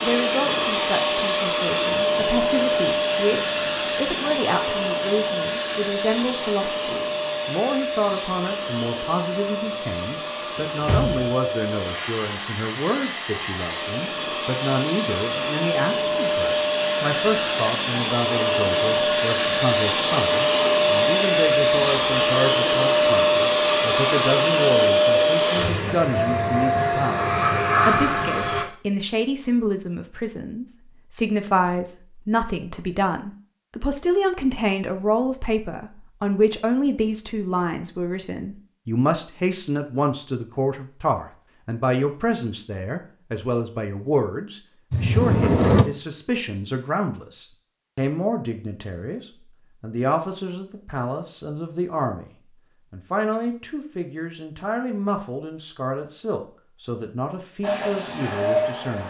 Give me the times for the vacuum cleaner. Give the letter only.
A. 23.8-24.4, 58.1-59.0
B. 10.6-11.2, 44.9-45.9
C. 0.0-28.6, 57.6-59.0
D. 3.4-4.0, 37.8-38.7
C.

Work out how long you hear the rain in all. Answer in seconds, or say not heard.
not heard.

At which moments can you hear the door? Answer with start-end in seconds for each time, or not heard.
10.6-11.2, 44.9-45.9.